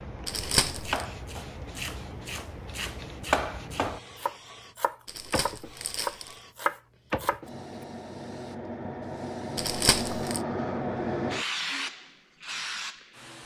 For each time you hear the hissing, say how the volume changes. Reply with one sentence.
You can hear the hissing from 0.0 to 13.4 s, getting louder.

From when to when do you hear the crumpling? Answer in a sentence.
The crumpling can be heard from 0.2 to 1.1 s, from 5.0 to 6.3 s and from 9.6 to 10.4 s.